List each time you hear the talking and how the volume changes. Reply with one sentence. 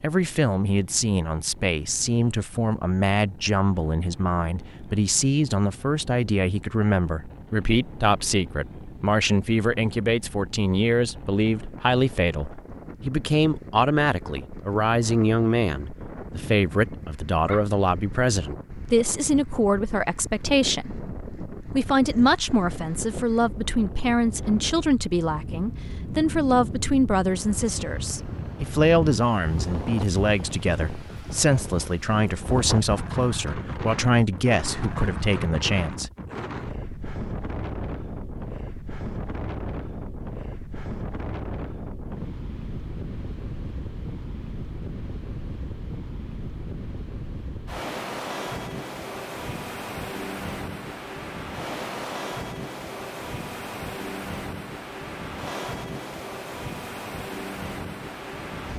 You can hear the talking from 0.0 to 36.1 s, at a steady volume.